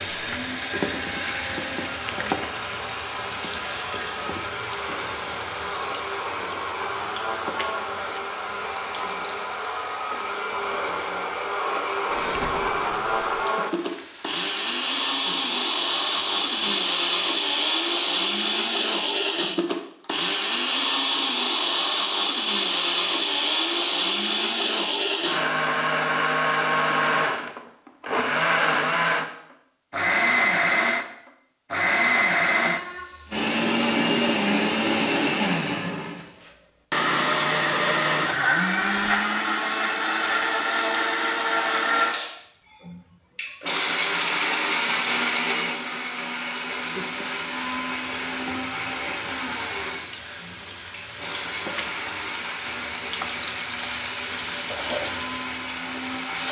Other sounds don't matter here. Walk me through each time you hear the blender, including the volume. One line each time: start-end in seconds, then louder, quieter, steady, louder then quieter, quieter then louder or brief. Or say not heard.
0.0-56.4 louder then quieter.